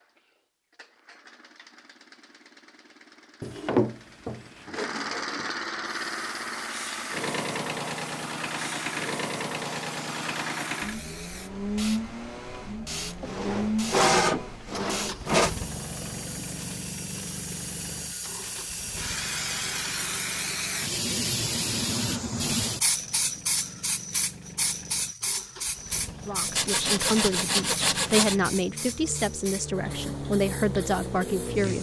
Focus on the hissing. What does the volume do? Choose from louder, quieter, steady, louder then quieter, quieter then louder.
louder then quieter.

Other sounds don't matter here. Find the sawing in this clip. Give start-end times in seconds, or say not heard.
3.4-5.5, 13.2-15.5, 26.6-28.4.